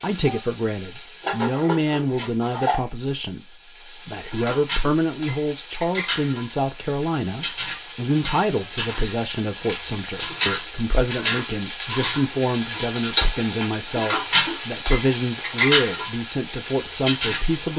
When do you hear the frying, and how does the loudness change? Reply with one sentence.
You can hear the frying from 0.0 to 17.7 s, getting louder.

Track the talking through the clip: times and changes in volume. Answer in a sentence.
The talking can be heard from 0.0 to 17.7 s, at a steady volume.